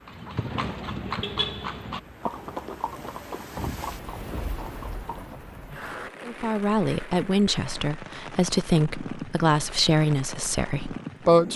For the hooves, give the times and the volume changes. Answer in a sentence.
The hooves can be heard from 0.1 to 5.8 s, getting quieter.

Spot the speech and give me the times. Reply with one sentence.
The speech can be heard from 6.2 to 11.5 s.